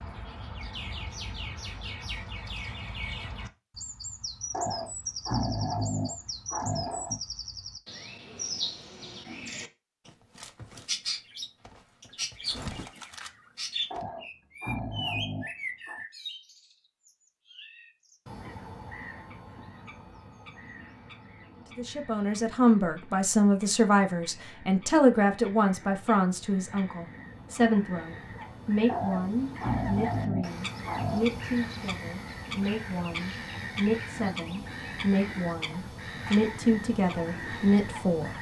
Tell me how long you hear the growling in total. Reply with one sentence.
You can hear the growling for 7 seconds altogether.